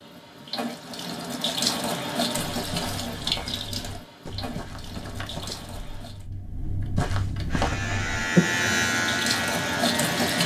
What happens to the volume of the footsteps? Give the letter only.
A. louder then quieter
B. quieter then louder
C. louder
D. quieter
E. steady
C.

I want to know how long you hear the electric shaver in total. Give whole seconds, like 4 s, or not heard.
3 s.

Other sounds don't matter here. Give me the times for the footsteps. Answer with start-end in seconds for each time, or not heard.
2.5-8.2.